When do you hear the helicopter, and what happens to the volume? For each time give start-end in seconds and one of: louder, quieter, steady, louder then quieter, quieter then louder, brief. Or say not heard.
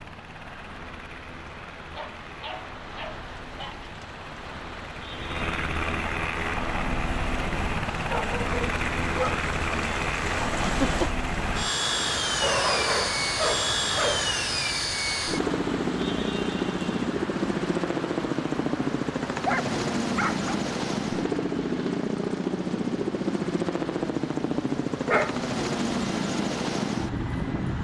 0.0-27.7 louder.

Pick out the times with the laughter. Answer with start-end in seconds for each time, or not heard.
10.7-11.2.